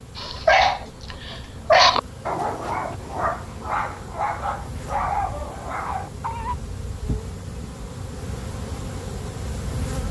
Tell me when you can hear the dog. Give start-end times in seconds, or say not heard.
0.1-6.5.